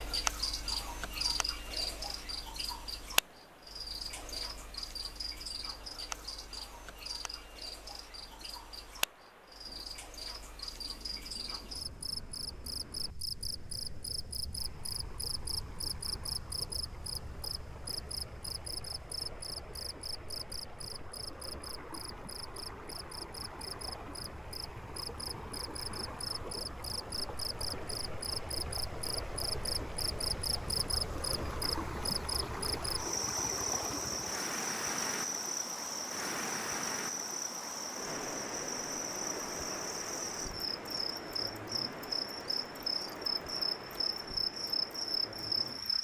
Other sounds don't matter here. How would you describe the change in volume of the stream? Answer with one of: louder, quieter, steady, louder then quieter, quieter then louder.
louder.